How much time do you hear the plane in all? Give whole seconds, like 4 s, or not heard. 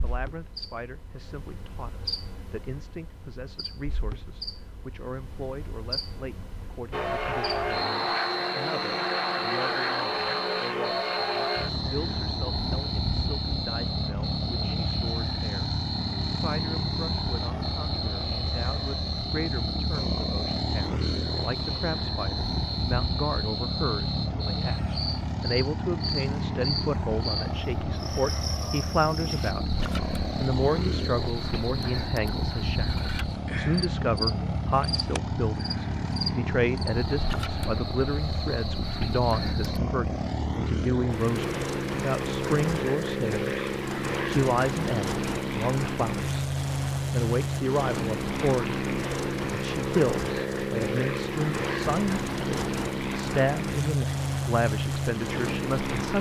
49 s.